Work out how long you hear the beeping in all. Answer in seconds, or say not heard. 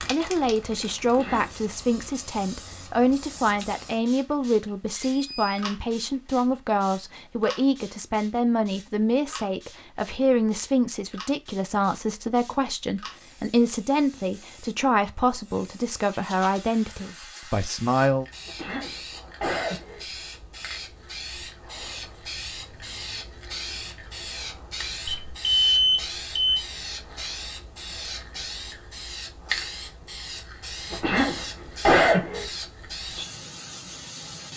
2 s.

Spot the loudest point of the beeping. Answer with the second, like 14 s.
26 s.